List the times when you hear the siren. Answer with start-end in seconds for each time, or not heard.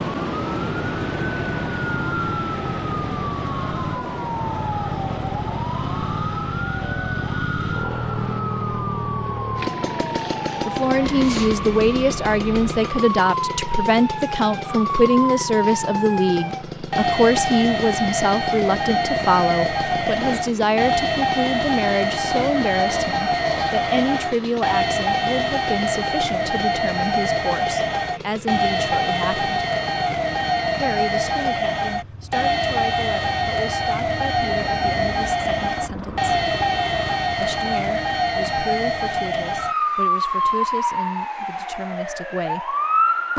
0.0-43.3.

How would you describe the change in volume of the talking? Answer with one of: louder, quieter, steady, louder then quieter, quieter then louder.
quieter.